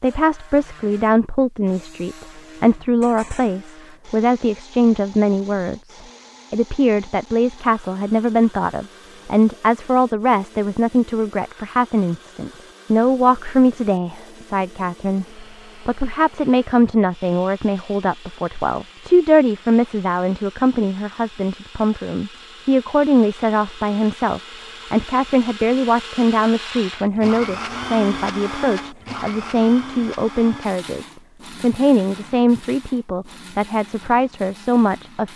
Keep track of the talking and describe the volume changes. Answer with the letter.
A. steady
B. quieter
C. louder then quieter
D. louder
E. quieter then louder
A.